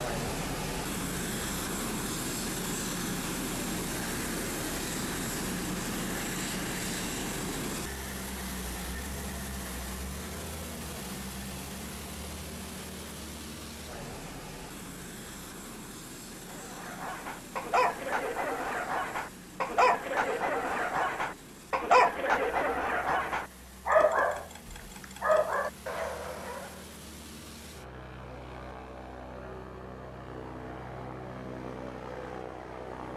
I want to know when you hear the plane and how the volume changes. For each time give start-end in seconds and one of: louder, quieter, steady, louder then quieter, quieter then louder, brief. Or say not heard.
0.0-33.1 quieter then louder.